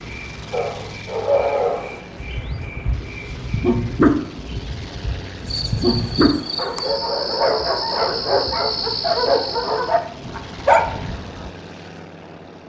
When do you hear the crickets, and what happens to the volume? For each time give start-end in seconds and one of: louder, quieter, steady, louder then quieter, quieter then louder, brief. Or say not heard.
0.0-10.0 louder.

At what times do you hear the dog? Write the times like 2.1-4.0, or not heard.
0.5-11.5.